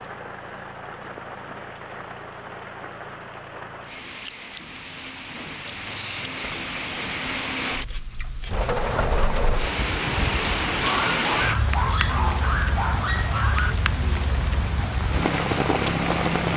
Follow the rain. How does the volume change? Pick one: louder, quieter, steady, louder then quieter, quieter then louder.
louder.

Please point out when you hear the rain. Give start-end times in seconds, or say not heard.
0.0-16.5.